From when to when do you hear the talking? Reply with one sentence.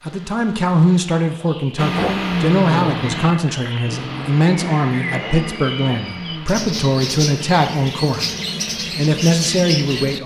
You can hear the talking from 0.0 to 8.3 s and from 8.9 to 10.2 s.